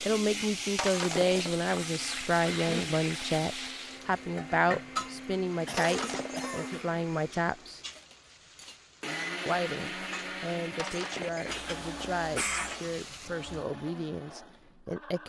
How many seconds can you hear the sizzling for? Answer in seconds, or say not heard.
14 s.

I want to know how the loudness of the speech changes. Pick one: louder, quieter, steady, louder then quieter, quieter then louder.
quieter.